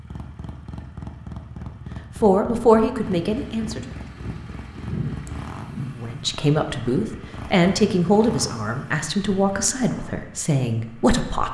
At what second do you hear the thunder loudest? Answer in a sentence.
The loudest moment of the thunder is at 5 seconds.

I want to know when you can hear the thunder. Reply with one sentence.
The thunder can be heard from 3.2 to 6.0 s.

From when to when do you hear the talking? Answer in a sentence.
The talking can be heard from 2.1 to 3.8 s and from 5.9 to 11.4 s.